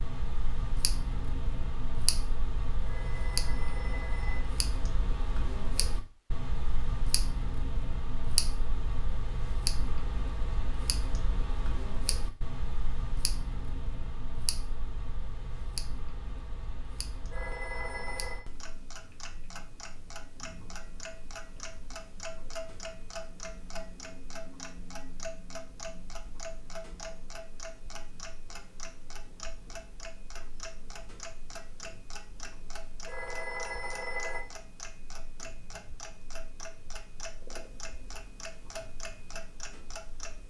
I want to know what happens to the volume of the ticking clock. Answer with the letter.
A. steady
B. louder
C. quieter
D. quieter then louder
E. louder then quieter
C.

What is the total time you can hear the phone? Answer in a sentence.
The phone can be heard for 4 seconds in total.